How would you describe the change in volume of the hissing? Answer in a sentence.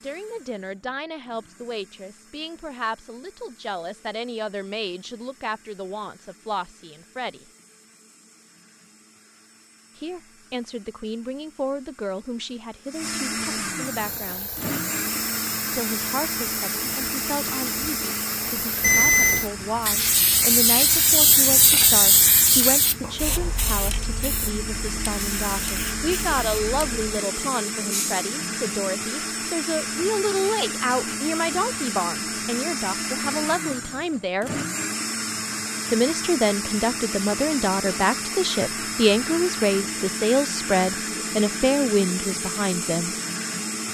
The loudness of the hissing goes up, then down.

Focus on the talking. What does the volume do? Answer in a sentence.
The volume of the talking goes up.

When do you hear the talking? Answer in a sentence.
You can hear the talking from 0.0 to 7.5 s, from 9.9 to 14.5 s, from 15.7 to 34.5 s and from 35.9 to 43.1 s.